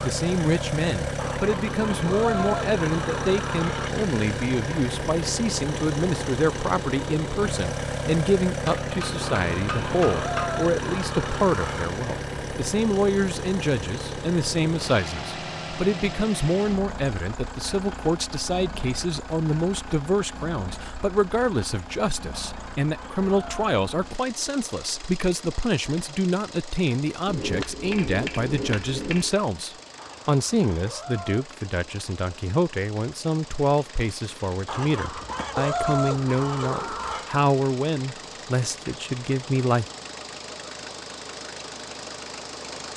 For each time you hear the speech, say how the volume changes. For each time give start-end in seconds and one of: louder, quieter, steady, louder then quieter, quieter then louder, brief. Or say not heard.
0.0-39.9 steady.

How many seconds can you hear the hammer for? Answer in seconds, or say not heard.
4 s.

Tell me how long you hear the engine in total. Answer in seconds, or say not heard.
43 s.